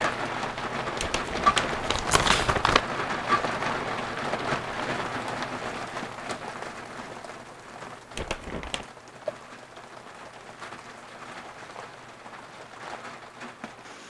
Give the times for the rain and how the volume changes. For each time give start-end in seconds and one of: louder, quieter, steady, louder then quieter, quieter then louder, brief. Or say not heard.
0.0-14.0 quieter.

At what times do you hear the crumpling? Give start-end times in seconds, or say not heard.
1.0-2.9, 8.2-8.8.